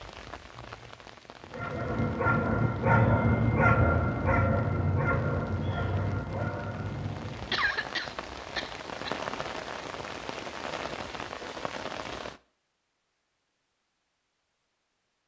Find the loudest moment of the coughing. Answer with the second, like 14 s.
8 s.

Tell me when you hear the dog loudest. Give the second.
3 s.